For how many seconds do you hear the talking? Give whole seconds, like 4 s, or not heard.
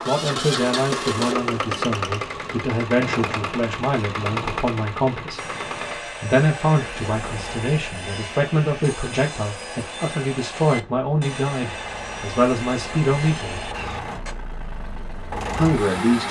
14 s.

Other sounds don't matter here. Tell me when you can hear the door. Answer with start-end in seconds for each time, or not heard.
not heard.